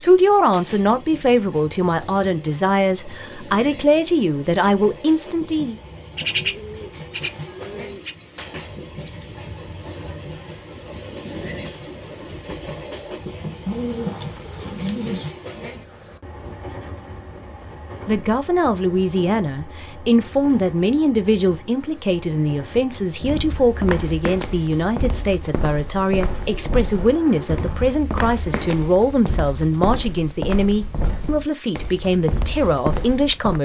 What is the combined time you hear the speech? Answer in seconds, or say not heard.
21 s.